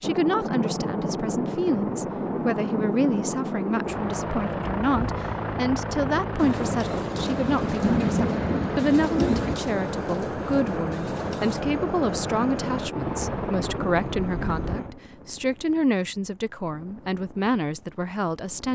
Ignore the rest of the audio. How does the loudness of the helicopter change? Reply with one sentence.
The loudness of the helicopter goes down.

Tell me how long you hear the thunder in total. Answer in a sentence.
The thunder can be heard for 3 seconds in total.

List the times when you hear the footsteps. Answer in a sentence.
The footsteps can't be heard in this clip.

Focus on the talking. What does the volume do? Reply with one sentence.
The volume of the talking stays about the same.